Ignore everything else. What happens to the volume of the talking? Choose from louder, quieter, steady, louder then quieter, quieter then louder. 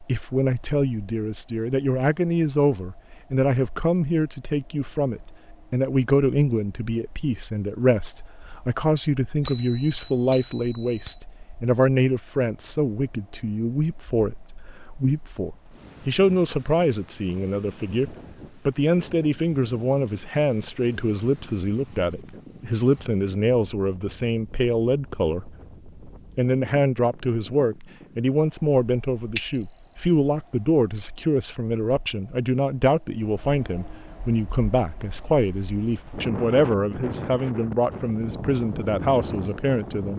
steady.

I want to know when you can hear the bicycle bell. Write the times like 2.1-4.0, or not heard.
9.4-11.2, 29.4-30.1.